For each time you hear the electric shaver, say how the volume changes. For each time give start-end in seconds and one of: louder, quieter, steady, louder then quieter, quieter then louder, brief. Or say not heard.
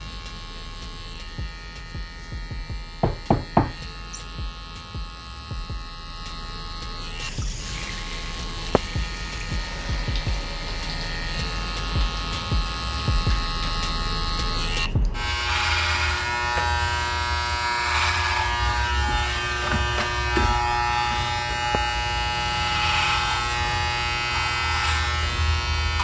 0.0-25.9 louder.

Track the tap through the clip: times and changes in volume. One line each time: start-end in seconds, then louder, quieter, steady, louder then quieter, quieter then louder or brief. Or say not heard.
7.2-13.8 steady.